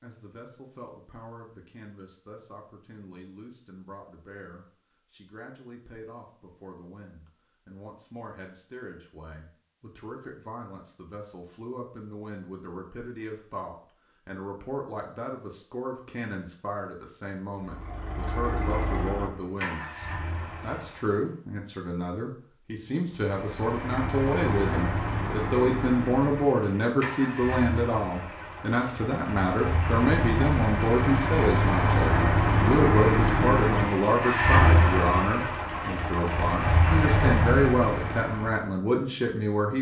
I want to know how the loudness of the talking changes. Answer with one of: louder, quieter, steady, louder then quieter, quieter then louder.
louder.